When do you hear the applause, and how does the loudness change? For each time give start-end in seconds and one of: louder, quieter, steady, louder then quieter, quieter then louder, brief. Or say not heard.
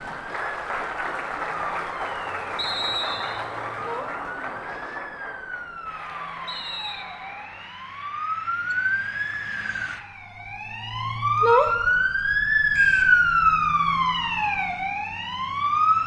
0.0-10.1 quieter.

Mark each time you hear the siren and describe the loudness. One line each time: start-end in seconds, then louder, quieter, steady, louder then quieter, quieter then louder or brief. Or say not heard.
0.1-16.0 louder.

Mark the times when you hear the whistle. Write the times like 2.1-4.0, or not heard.
2.5-3.5, 6.5-7.0, 12.7-13.2.